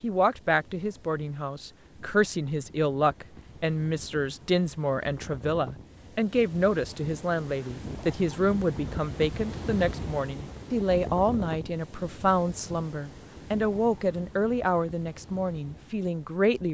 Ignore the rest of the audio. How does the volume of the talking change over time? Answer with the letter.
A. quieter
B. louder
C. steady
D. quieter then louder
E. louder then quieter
C.